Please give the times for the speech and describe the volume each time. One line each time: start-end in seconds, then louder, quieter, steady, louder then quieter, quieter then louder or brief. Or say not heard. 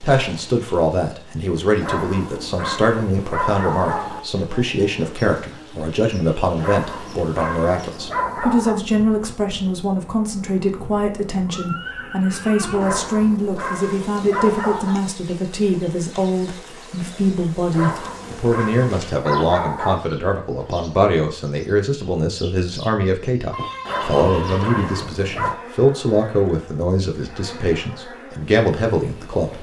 0.0-29.5 steady.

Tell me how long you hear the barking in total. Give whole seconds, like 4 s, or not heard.
11 s.